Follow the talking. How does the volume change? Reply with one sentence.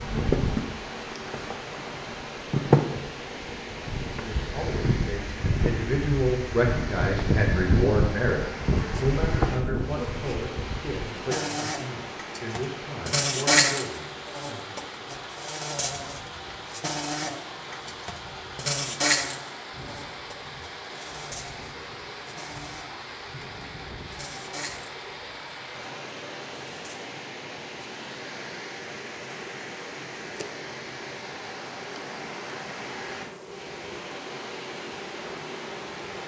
The loudness of the talking goes down.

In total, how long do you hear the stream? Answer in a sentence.
You can hear the stream for 36 seconds altogether.